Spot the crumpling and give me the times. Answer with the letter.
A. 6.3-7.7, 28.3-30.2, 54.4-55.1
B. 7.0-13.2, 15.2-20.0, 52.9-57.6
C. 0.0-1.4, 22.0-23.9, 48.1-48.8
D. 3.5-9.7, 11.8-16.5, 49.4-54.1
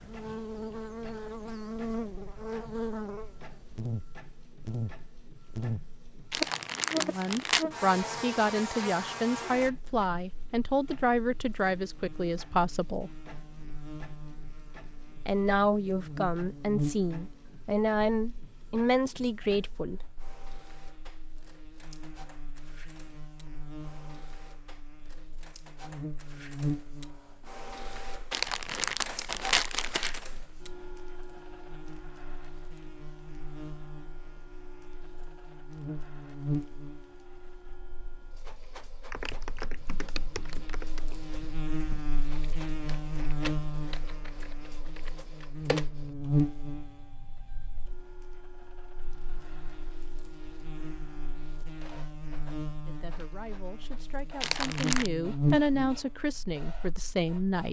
A.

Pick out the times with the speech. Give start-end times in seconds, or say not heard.
7.0-13.2, 15.2-20.0, 52.9-57.6.